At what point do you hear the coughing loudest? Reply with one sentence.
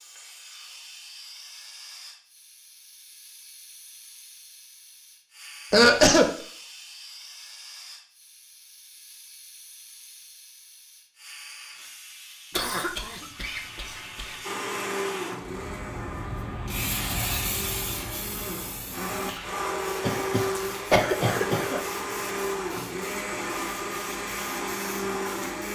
The volume of the coughing peaks at 6 seconds.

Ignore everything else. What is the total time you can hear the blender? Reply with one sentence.
You can hear the blender for 11 seconds altogether.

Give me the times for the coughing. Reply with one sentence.
You can hear the coughing from 5.7 to 6.3 s, from 12.6 to 14.3 s and from 20.0 to 21.8 s.